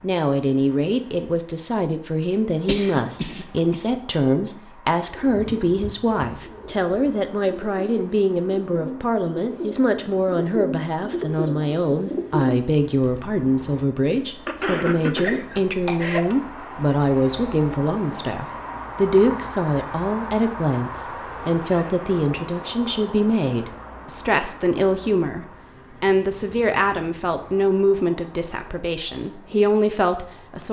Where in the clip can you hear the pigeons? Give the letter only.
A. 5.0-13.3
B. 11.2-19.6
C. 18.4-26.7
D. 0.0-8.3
A.